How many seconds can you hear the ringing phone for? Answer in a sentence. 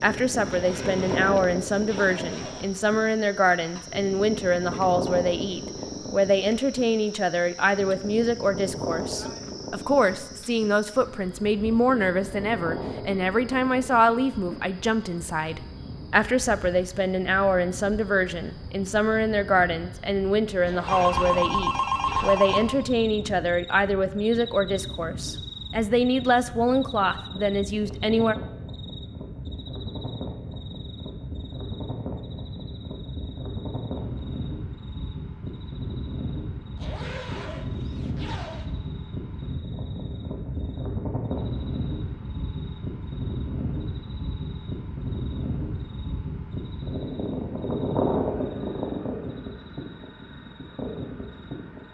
The ringing phone can be heard for 2 seconds in total.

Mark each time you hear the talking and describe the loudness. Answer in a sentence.
The talking can be heard from 0.0 to 28.4 s, at a steady volume.